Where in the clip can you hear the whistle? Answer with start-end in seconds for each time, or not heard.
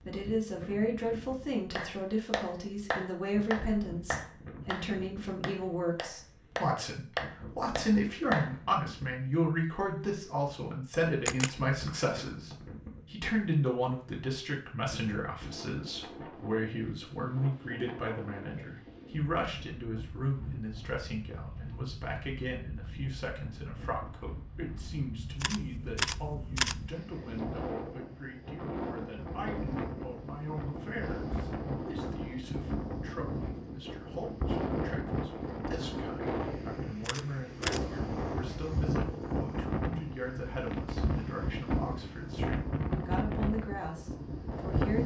11.8-12.6.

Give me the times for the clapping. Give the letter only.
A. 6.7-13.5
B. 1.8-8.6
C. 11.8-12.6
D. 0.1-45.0
B.